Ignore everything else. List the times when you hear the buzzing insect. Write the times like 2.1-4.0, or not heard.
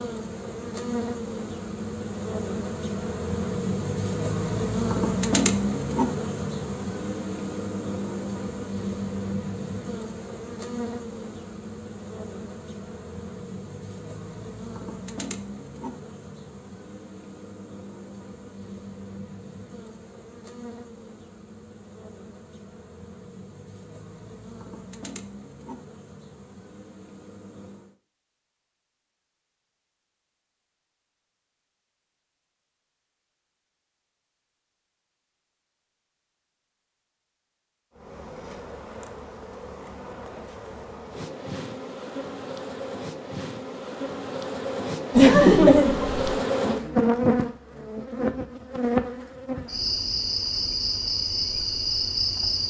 0.0-27.9, 38.0-52.6.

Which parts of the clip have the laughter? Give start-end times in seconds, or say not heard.
45.1-46.2.